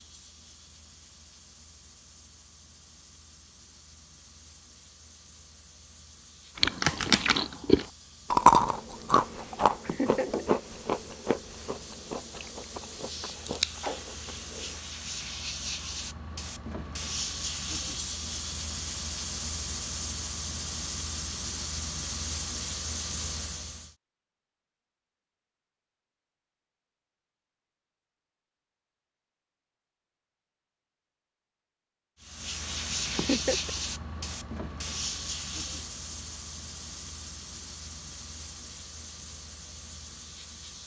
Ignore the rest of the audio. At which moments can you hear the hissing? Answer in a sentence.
The hissing can be heard from 0.0 to 23.9 s and from 32.2 to 40.8 s.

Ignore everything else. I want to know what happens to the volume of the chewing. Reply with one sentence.
The volume of the chewing goes down, then up.